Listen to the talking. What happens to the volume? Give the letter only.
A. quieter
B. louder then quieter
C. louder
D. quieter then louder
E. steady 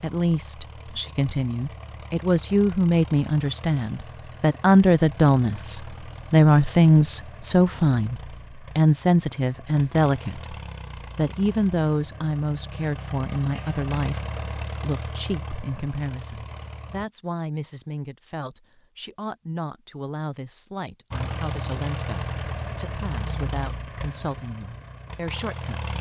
A.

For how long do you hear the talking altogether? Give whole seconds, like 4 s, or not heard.
25 s.